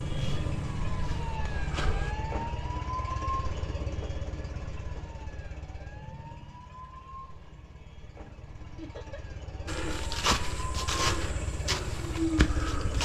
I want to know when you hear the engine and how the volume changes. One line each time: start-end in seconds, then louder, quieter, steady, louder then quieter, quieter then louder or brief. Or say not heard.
0.0-13.0 quieter then louder.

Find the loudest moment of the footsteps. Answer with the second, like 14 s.
10 s.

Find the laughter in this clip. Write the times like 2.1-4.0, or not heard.
8.8-9.2.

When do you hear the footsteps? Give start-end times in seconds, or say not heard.
0.1-2.1, 9.7-13.0.